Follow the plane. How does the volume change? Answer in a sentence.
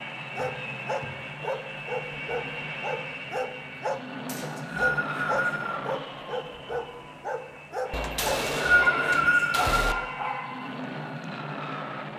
The volume of the plane stays about the same.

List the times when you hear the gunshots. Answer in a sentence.
The gunshots can be heard from 7.9 to 9.9 s.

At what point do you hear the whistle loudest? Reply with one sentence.
The volume of the whistle peaks at 9 seconds.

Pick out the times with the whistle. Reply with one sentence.
You can hear the whistle from 0.3 to 1.6 s, from 4.2 to 5.8 s and from 8.2 to 9.9 s.